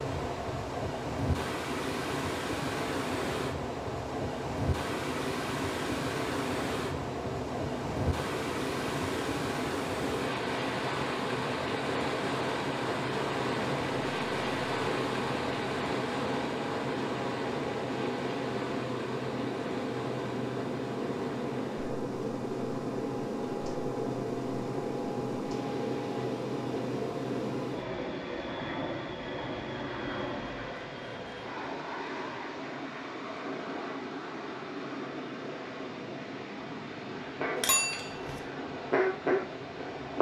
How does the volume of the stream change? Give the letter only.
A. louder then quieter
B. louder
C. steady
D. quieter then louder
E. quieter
E.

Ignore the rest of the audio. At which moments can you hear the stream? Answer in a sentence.
The stream can be heard from 0.0 to 40.1 s.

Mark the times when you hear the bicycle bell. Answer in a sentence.
You can hear the bicycle bell from 37.5 to 38.4 s.